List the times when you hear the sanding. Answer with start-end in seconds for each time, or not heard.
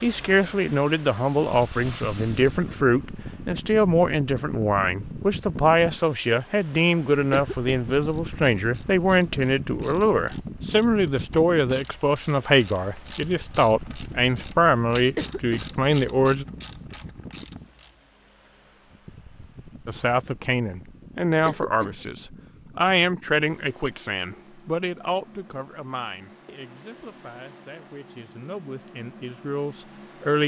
not heard.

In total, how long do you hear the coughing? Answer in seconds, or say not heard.
2 s.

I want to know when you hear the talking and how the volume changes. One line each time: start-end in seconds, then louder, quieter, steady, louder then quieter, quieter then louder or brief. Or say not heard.
0.0-16.4 steady
19.9-30.4 quieter then louder.